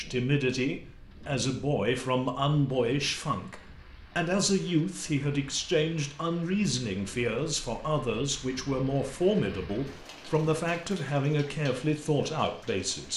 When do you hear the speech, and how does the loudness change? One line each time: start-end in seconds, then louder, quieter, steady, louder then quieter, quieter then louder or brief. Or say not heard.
0.0-13.1 steady.